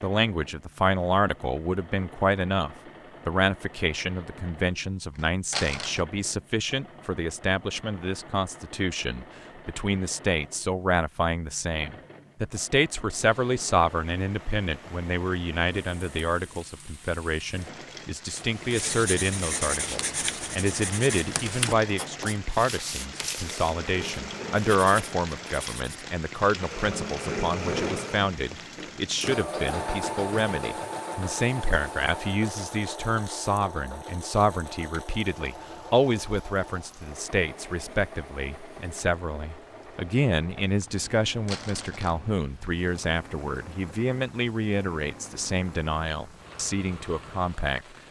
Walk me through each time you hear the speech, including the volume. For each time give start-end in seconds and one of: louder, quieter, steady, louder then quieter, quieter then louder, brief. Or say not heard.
0.0-47.9 steady.